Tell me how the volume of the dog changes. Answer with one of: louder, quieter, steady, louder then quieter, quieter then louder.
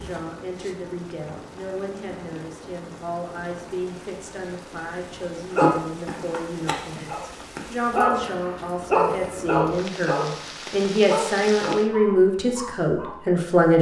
louder then quieter.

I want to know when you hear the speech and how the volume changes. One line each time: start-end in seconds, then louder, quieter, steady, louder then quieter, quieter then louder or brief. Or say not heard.
0.0-13.7 louder.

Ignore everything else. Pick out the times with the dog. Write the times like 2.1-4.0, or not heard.
5.5-13.4.